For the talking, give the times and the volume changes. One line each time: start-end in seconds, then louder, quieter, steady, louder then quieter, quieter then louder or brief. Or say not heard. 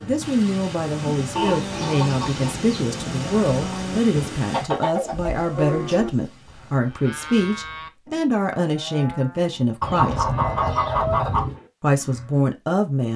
0.0-10.2 steady
11.8-13.1 brief.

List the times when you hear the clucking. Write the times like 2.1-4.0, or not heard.
1.4-2.9, 4.5-6.2, 9.8-11.6.